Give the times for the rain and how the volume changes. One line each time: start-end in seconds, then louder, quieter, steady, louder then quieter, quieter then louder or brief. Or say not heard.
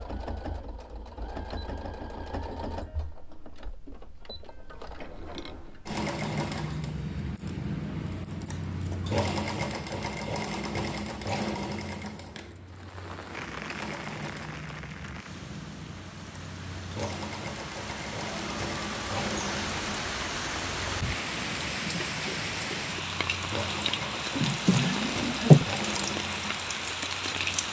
12.7-27.6 louder.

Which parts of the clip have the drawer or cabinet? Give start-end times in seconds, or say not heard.
24.4-25.6.